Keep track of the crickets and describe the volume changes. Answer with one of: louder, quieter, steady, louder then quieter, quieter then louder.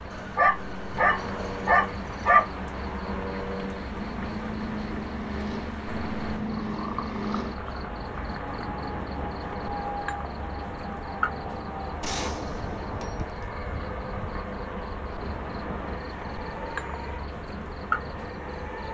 steady.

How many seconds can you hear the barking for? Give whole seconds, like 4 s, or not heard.
2 s.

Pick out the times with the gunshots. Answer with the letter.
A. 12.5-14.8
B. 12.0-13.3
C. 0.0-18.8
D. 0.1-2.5
B.